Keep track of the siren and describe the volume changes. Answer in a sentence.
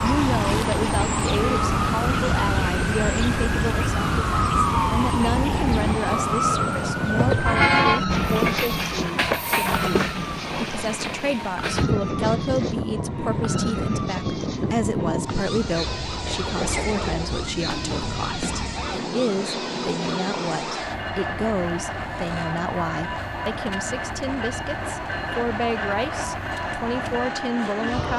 The loudness of the siren goes down.